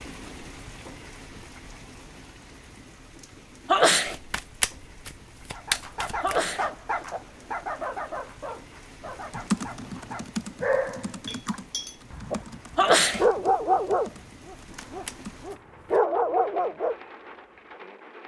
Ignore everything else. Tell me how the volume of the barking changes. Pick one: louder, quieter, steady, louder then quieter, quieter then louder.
quieter then louder.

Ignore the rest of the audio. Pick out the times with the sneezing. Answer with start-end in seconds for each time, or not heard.
3.6-4.2, 6.2-7.2, 12.8-13.2.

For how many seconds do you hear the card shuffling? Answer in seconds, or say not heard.
4 s.